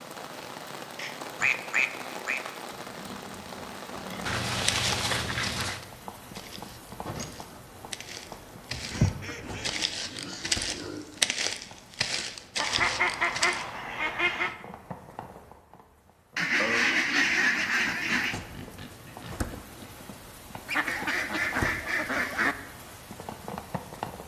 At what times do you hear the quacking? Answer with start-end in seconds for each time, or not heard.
0.9-2.4, 4.2-5.8, 8.7-9.7, 12.6-14.6, 16.4-18.4, 20.6-22.6.